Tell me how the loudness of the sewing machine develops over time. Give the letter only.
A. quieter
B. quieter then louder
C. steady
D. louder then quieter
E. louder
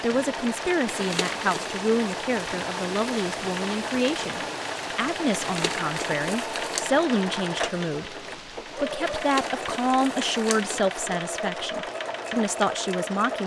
C.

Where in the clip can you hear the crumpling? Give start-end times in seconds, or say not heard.
0.8-1.8, 5.3-6.8, 9.1-10.8.